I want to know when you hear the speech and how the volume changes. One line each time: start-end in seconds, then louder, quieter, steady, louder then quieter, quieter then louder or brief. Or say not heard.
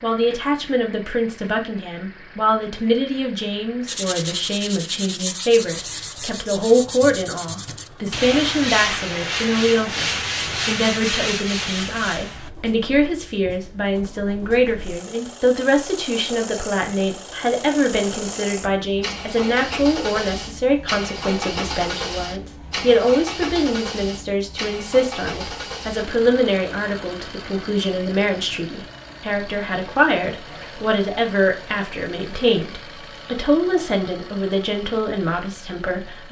0.0-36.2 steady.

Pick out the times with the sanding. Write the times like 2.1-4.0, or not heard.
3.9-12.5.